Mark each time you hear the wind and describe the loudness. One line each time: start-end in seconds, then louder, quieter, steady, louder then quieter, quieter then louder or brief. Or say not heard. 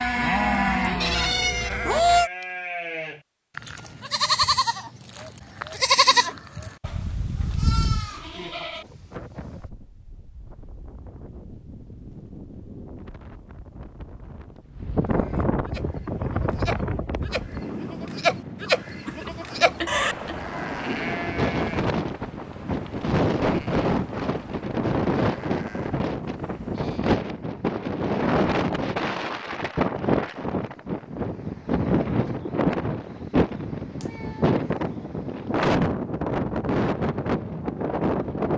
8.8-38.5 louder.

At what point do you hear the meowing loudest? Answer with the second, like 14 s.
2 s.